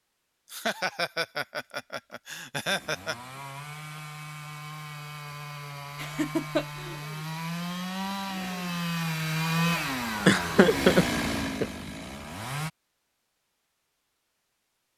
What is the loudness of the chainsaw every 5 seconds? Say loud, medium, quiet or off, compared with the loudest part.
medium, loud, loud.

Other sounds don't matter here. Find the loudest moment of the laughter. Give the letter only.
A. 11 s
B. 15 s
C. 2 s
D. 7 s
A.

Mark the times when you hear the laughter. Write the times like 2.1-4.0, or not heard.
0.5-3.1, 6.0-7.0, 10.2-11.7.